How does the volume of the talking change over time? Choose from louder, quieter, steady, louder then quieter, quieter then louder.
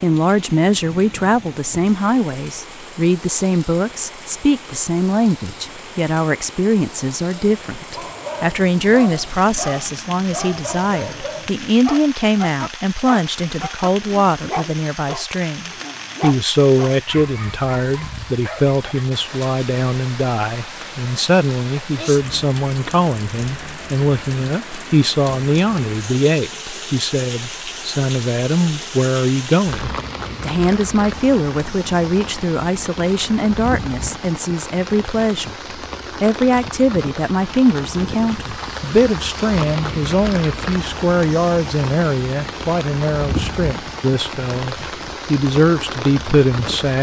steady.